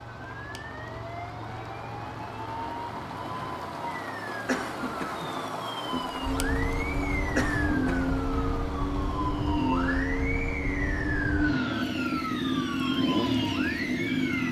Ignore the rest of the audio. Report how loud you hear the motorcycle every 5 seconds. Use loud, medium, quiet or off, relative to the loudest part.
quiet, loud, loud.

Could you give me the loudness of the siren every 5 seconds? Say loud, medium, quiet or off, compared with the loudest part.
medium, loud, loud.